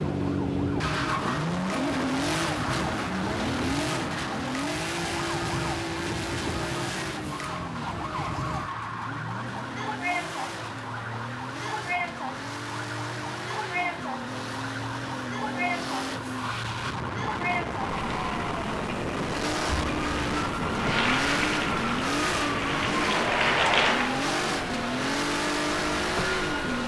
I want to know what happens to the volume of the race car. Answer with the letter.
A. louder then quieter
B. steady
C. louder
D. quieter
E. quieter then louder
E.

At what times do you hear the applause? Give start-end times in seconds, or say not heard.
20.8-24.2.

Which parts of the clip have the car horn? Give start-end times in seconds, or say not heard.
not heard.